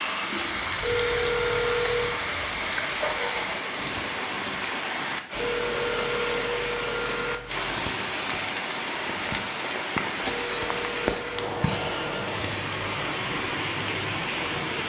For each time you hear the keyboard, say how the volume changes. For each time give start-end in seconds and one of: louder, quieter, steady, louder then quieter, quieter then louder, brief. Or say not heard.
not heard.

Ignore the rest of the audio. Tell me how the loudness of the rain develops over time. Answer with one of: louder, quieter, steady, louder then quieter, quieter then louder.
steady.